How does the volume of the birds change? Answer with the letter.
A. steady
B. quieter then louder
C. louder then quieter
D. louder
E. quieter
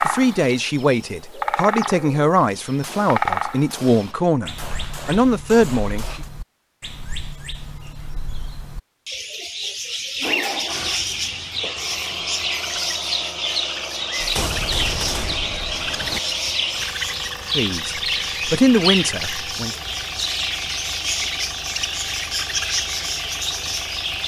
B.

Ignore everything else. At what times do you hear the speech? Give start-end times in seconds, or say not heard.
0.0-6.2, 17.5-19.8.